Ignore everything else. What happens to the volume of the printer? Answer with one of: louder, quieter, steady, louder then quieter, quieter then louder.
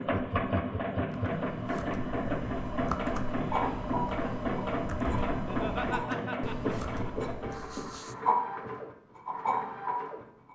quieter.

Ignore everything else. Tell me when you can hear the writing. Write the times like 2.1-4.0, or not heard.
3.5-10.5.